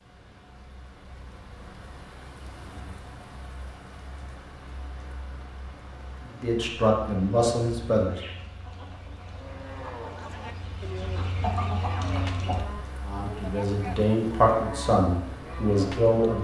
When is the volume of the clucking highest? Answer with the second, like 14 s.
12 s.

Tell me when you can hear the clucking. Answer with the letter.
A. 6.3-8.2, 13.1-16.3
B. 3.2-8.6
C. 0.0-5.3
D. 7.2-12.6
D.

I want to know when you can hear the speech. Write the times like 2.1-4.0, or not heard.
6.3-8.2, 13.1-16.3.